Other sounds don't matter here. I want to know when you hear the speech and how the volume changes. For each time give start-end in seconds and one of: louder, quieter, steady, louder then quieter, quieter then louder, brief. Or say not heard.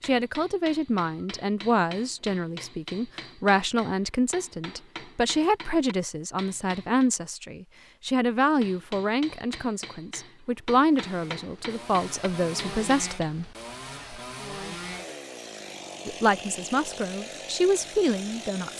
0.0-13.4 steady
16.1-18.7 brief.